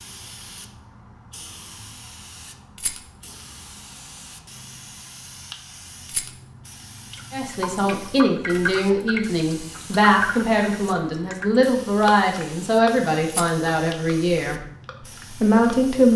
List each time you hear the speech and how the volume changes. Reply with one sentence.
The speech can be heard from 7.3 to 14.6 s, at a steady volume; and briefly from 15.3 to 16.1 s.